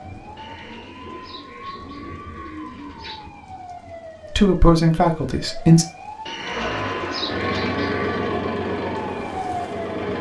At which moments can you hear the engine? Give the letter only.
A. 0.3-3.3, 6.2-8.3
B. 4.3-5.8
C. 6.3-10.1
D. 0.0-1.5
C.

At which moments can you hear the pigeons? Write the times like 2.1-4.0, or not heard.
0.3-3.3, 6.2-8.3.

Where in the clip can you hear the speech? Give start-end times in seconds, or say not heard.
4.3-5.8.